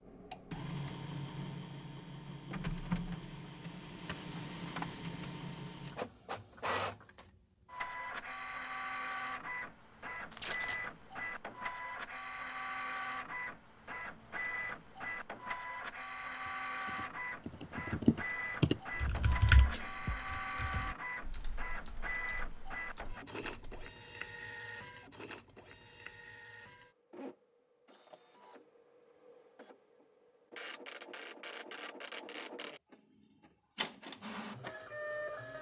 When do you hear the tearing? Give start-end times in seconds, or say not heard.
10.3-10.9.